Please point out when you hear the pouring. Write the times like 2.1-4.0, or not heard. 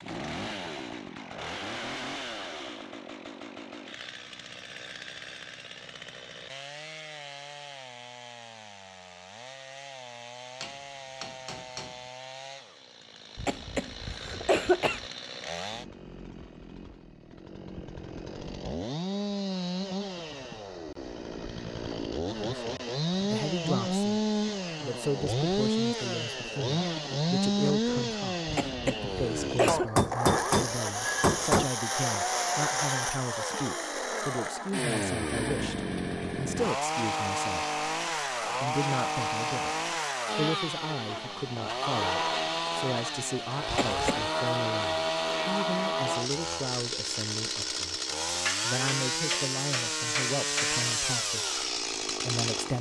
not heard.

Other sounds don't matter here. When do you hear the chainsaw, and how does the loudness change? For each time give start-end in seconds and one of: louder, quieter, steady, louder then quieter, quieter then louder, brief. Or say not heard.
0.0-52.7 louder.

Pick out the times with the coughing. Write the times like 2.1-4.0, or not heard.
13.3-15.0, 28.4-29.9, 43.6-44.2.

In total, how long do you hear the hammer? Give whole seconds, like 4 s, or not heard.
6 s.